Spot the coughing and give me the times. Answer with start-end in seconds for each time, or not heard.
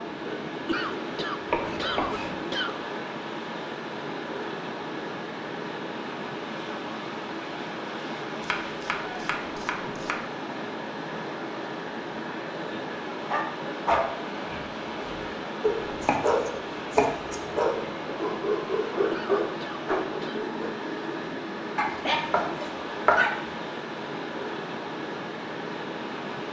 0.7-2.8, 19.1-20.4.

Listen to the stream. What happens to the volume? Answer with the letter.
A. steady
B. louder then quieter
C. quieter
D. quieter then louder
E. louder
A.